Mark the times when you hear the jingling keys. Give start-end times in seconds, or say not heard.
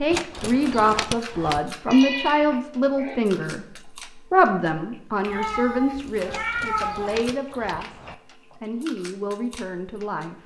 0.1-1.6, 6.2-8.2.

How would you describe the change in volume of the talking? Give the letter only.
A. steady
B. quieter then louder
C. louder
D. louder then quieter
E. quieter
E.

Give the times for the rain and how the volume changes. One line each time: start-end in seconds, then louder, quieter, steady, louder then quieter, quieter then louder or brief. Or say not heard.
not heard.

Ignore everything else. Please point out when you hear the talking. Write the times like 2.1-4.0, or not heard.
0.0-3.6, 4.3-10.3.